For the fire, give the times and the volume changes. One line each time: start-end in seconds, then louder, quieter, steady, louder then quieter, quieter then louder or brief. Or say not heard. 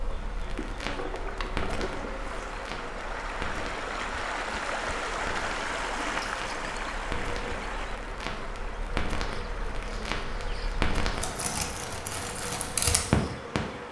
0.0-13.6 louder.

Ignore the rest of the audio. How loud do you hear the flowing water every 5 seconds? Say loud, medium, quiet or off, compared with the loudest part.
loud, loud, medium.